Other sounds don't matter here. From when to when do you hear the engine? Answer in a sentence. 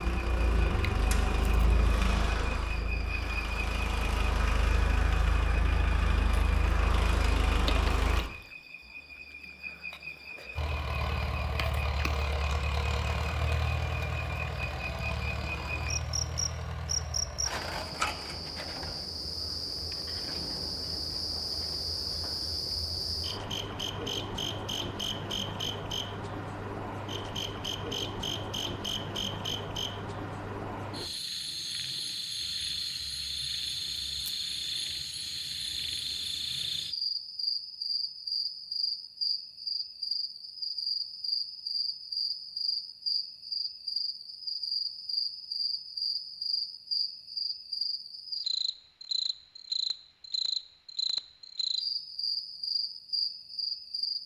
The engine can be heard from 0.0 to 8.2 s and from 10.6 to 17.5 s.